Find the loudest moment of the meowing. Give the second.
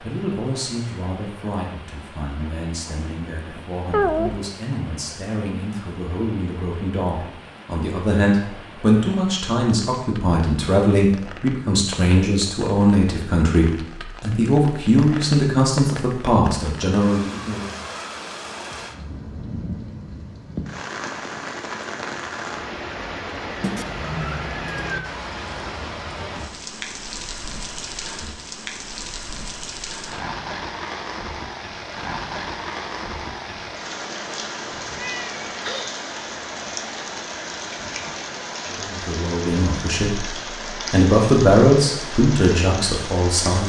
4 s.